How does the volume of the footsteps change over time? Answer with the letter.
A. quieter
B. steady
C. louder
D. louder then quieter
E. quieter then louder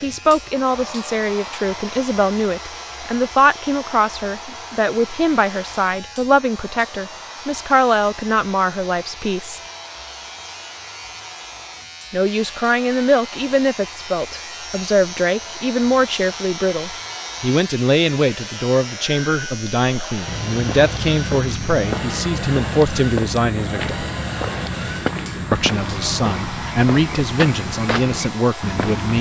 B.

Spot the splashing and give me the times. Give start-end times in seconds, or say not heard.
not heard.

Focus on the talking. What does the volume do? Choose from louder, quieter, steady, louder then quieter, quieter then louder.
steady.